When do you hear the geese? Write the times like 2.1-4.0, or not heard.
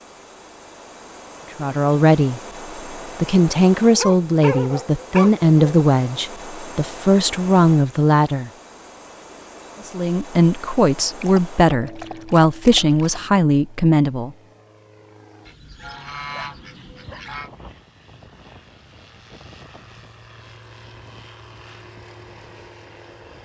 15.4-17.5.